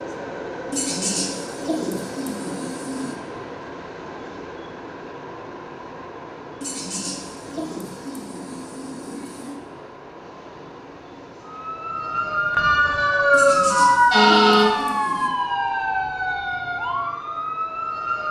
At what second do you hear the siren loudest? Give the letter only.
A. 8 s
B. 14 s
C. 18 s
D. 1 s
B.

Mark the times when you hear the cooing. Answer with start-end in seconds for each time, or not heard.
0.7-3.1, 6.6-9.6, 13.3-15.3.